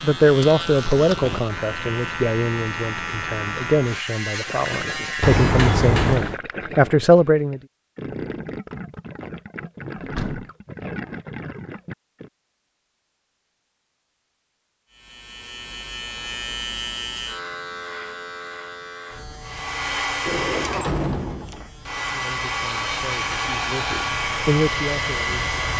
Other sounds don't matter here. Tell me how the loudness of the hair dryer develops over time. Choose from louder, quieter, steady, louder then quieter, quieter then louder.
quieter then louder.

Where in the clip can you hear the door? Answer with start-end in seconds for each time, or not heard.
5.2-6.3, 9.9-10.5, 20.2-21.7.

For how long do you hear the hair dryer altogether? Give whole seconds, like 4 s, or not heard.
6 s.